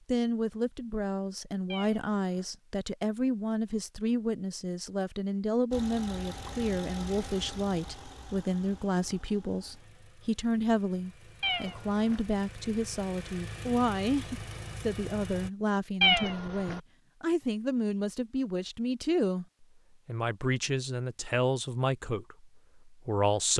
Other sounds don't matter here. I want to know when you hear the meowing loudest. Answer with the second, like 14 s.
16 s.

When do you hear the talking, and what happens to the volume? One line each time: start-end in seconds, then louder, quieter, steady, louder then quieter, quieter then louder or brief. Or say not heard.
0.1-23.5 steady.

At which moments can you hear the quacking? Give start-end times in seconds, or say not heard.
not heard.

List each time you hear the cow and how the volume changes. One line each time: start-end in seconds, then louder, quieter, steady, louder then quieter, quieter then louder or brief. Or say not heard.
not heard.